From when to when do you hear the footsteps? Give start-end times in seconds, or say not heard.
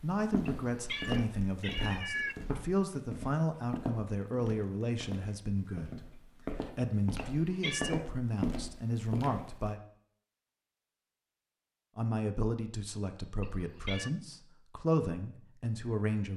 0.0-9.7.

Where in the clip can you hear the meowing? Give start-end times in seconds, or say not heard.
0.5-2.4, 7.2-8.2, 13.4-14.1.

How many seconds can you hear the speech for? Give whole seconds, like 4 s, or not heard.
14 s.